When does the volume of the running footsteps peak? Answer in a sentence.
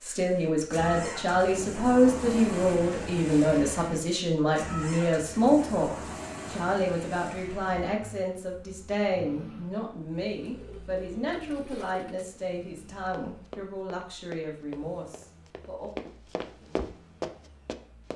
The volume of the running footsteps peaks at 17 seconds.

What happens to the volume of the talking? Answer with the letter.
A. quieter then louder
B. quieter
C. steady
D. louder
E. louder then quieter
B.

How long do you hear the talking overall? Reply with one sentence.
The talking can be heard for 16 seconds in total.